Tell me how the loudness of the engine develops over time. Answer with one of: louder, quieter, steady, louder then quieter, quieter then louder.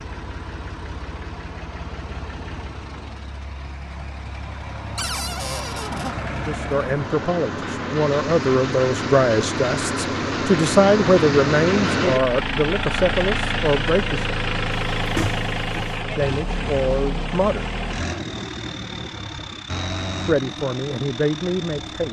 louder then quieter.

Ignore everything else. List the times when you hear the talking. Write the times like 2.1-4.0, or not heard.
6.4-14.3, 15.9-17.7, 20.2-22.0.